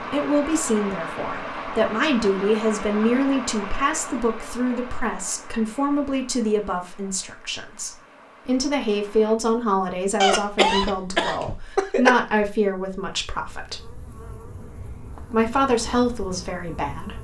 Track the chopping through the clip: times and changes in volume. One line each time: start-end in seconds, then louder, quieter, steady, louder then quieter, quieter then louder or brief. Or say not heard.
not heard.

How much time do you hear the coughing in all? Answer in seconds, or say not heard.
2 s.